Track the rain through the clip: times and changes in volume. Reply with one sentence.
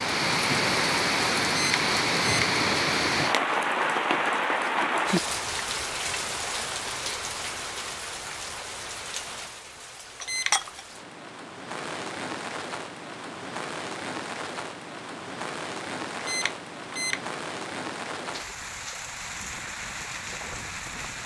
The rain can be heard from 0.0 to 21.2 s, getting quieter.